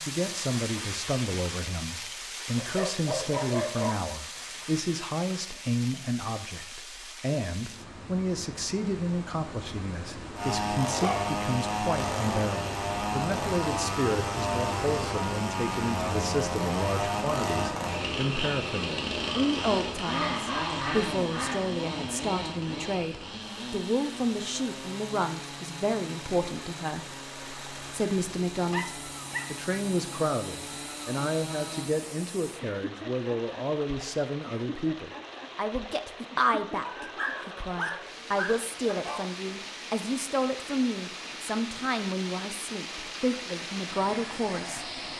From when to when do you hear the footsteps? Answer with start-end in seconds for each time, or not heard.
not heard.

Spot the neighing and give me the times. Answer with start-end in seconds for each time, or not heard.
not heard.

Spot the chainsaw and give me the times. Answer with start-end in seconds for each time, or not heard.
10.3-31.9.